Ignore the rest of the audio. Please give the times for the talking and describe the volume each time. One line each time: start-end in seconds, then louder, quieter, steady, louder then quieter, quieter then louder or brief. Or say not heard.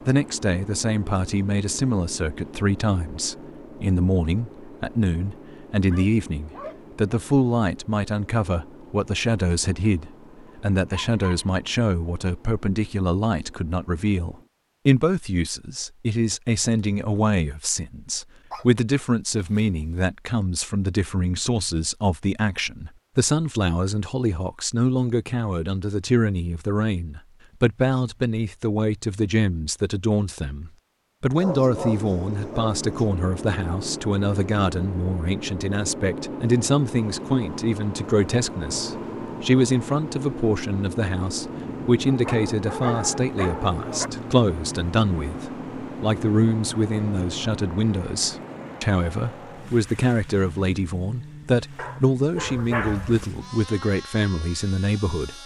0.1-55.4 steady.